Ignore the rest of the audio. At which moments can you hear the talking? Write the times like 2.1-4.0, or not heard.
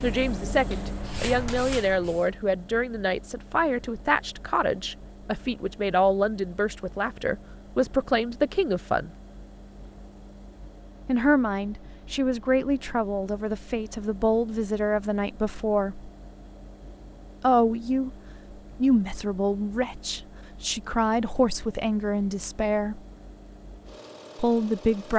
0.0-9.1, 11.1-16.1, 17.4-18.1, 18.8-23.0, 24.4-25.1.